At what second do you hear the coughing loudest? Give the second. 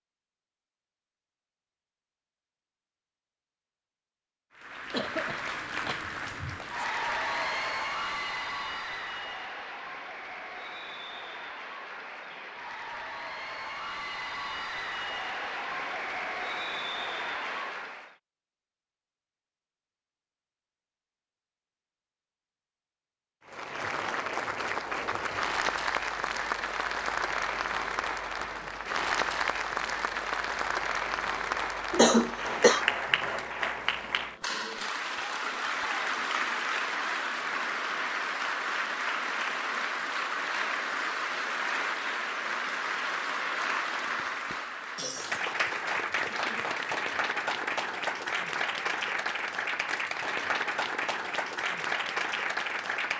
32 s.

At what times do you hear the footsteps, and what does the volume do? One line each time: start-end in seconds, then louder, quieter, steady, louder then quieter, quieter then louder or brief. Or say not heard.
not heard.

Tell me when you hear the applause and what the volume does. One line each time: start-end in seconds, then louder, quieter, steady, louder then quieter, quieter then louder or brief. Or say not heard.
4.5-18.1 quieter then louder
23.4-53.1 steady.